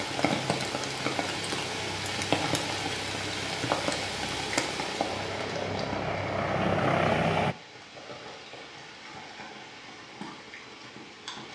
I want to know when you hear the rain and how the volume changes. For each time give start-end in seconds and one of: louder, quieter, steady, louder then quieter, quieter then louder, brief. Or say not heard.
0.0-11.5 quieter.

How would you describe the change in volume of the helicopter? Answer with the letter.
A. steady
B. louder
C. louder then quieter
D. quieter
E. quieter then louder
B.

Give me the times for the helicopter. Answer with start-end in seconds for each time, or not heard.
0.0-7.5.